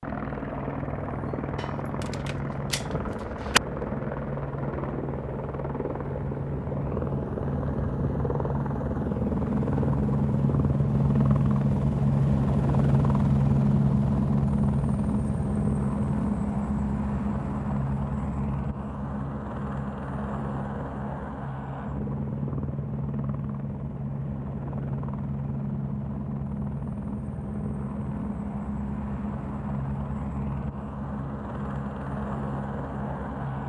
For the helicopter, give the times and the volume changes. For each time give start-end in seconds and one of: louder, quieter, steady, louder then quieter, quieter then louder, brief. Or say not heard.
0.0-33.6 louder then quieter.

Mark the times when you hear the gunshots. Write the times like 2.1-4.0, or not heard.
1.6-3.6.